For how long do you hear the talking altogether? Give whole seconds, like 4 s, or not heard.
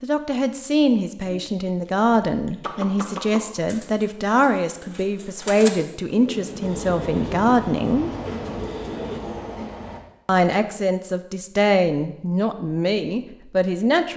12 s.